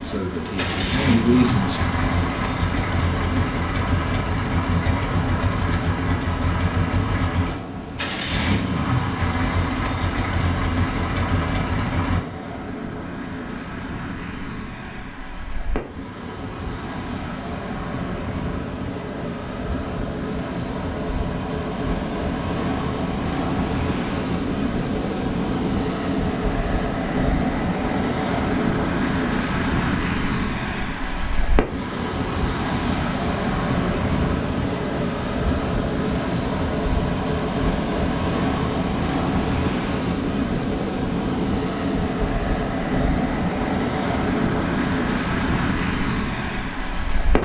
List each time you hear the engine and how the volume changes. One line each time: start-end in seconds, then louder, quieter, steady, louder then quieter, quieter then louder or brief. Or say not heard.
0.0-12.2 steady.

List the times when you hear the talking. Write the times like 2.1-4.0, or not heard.
0.0-1.8.